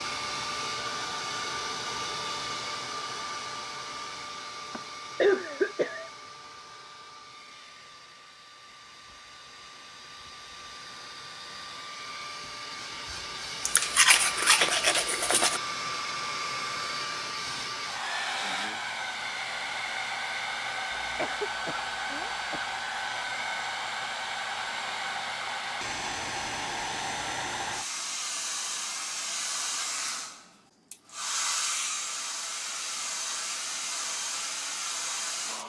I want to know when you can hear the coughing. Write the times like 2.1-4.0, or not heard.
4.7-6.1, 21.0-22.7.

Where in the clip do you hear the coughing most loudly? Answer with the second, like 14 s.
5 s.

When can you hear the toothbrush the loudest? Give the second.
14 s.